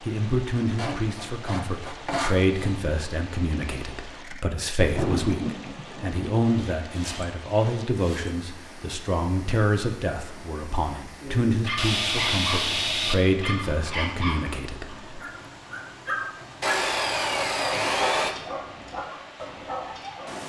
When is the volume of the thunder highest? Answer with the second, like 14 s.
5 s.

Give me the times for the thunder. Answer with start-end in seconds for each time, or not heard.
4.8-6.4.